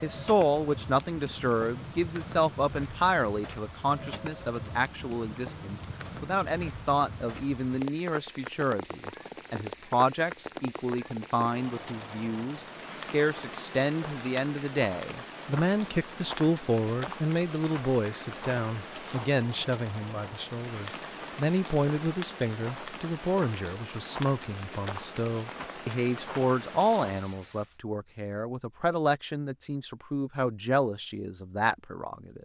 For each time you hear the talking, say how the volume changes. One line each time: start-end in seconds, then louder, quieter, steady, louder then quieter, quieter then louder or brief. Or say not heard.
0.0-32.4 steady.